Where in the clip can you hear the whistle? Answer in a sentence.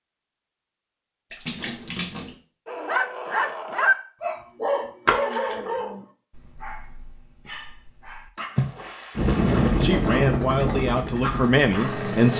The whistle can't be heard in this clip.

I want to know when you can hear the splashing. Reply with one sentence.
The splashing can be heard from 1.3 to 2.4 s, from 5.0 to 5.7 s and from 8.3 to 10.2 s.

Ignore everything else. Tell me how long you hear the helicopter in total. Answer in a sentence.
You can hear the helicopter for 3 seconds altogether.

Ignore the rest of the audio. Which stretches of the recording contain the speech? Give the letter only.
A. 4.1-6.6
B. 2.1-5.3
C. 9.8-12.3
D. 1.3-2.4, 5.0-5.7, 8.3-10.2
C.